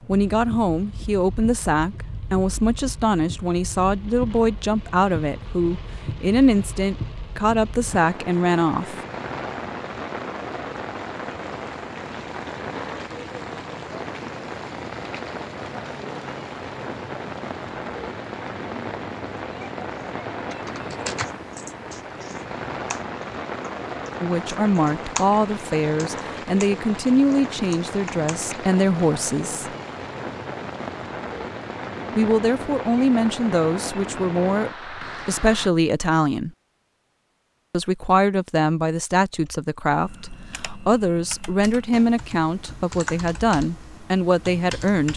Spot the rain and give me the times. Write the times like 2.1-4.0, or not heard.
0.0-35.7.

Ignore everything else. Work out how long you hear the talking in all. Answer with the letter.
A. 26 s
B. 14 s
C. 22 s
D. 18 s
A.